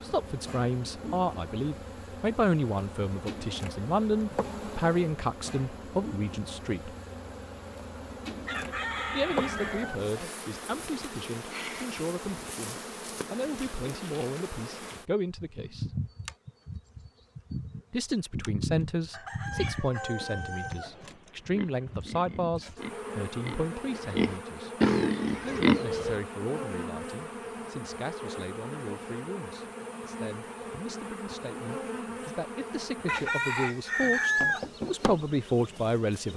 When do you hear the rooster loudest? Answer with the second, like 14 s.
34 s.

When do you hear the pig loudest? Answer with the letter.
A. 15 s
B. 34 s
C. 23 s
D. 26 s
D.